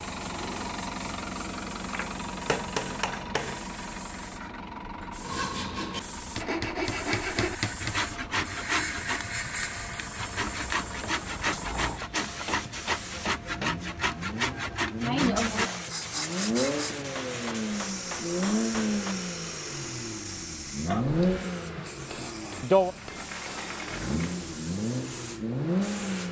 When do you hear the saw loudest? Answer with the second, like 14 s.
15 s.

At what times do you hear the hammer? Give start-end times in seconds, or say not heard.
1.9-3.5, 6.3-8.0, 11.0-13.8, 17.1-19.1, 21.9-23.7.